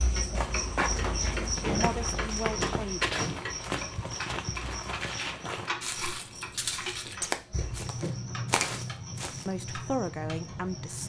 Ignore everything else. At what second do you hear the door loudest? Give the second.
2 s.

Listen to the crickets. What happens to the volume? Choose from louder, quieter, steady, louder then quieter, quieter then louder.
quieter.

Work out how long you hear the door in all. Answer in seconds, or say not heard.
3 s.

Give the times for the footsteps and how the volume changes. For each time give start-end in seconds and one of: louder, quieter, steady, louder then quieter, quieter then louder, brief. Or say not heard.
0.3-9.4 steady.